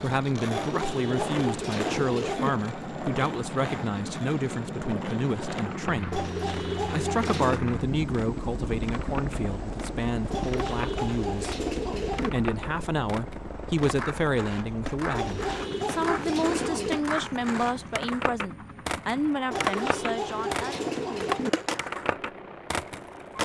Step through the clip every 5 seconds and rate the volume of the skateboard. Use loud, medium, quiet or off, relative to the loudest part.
medium, medium, medium, loud, loud.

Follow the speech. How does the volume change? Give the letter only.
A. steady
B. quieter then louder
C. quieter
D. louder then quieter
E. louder
A.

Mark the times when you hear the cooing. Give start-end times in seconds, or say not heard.
0.5-2.5, 6.1-7.7, 10.3-12.3, 15.1-17.0, 19.5-21.5.